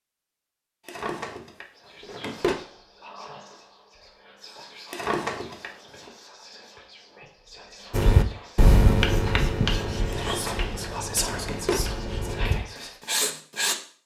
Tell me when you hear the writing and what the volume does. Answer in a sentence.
The writing can be heard from 7.9 to 13.8 s, getting quieter then louder.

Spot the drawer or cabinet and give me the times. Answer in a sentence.
The drawer or cabinet can be heard from 0.8 to 2.6 s, from 4.9 to 6.1 s and from 10.1 to 11.8 s.